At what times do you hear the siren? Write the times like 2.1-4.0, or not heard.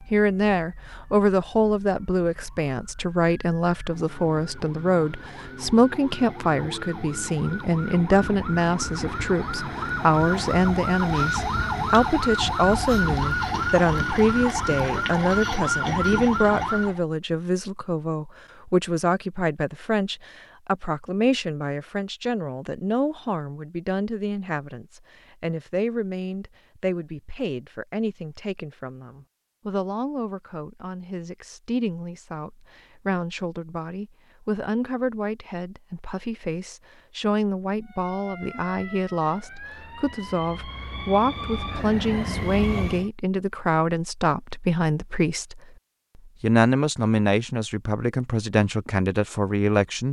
0.0-17.0, 37.8-43.1.